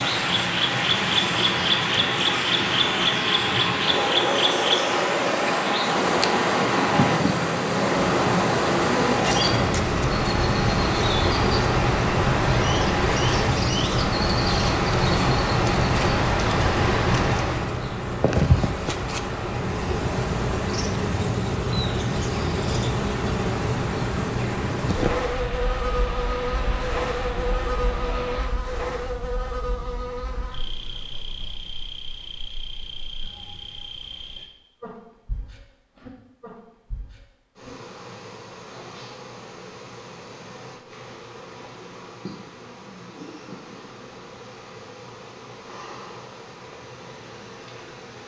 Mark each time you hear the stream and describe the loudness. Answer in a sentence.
The stream can be heard from 0.0 to 28.4 s, getting quieter.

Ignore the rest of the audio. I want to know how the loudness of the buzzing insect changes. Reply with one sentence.
The volume of the buzzing insect goes down.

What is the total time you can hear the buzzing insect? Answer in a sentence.
The buzzing insect can be heard for 48 seconds in total.